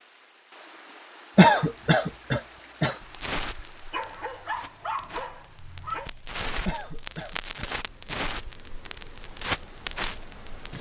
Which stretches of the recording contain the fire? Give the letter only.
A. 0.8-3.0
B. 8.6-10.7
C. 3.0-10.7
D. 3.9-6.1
C.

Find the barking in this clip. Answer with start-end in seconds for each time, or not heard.
3.9-6.1.